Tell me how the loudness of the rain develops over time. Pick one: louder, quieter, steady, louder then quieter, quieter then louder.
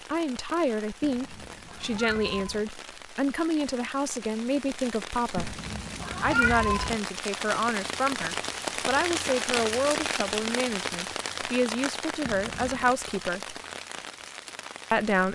louder then quieter.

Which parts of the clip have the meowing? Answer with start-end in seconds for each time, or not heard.
1.0-2.6, 5.3-7.0, 12.2-13.0.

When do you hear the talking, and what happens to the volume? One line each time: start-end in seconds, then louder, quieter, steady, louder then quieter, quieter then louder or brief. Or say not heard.
0.1-5.6 steady
6.2-13.6 steady
14.9-15.3 brief.